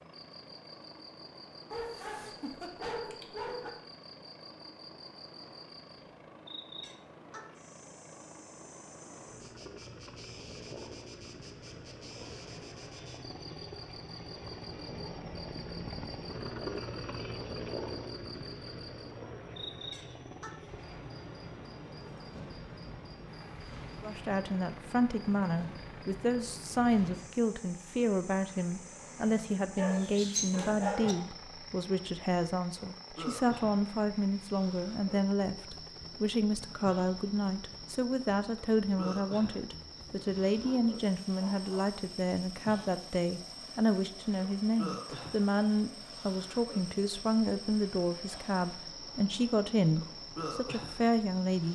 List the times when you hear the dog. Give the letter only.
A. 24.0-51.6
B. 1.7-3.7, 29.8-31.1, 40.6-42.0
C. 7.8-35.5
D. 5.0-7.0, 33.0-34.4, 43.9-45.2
B.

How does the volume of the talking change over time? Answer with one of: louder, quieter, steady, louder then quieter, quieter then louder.
steady.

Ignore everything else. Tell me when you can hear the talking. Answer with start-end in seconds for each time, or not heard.
24.0-51.6.